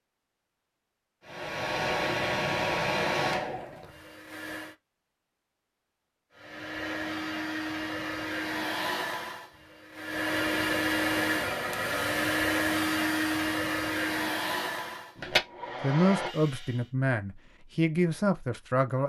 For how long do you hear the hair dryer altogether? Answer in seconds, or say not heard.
14 s.